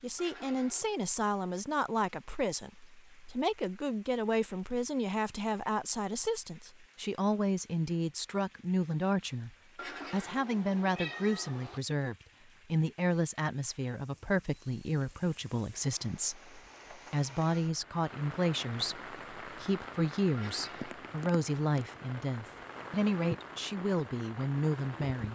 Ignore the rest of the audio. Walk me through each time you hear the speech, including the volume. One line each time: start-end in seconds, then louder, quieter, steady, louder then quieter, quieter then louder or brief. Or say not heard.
0.0-25.3 steady.